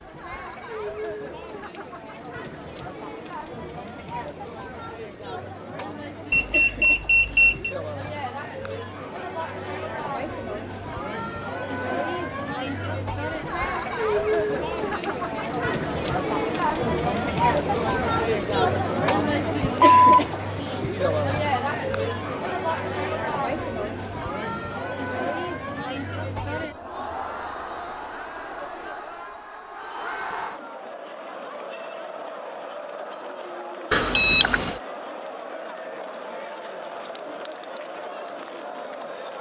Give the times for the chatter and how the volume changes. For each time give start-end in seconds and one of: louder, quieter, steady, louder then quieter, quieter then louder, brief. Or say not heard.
0.0-39.3 louder then quieter.